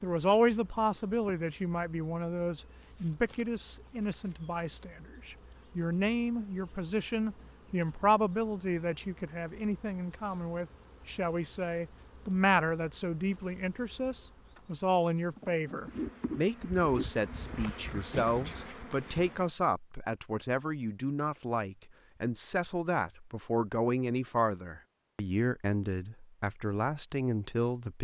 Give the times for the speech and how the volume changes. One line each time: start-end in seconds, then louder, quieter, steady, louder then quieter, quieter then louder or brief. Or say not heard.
0.0-27.9 steady.